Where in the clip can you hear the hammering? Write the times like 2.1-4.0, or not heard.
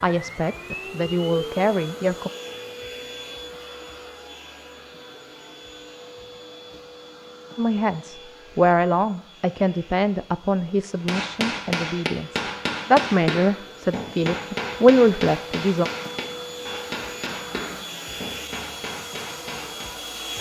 11.1-19.9.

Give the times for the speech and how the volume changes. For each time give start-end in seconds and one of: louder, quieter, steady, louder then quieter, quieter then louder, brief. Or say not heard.
0.0-2.3 brief
7.5-15.9 quieter then louder.